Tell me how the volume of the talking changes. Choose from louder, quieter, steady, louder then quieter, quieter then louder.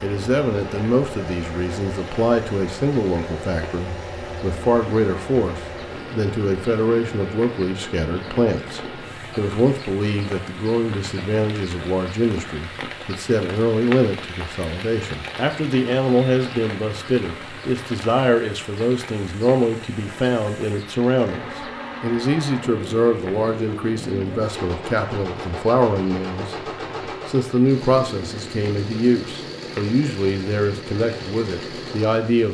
steady.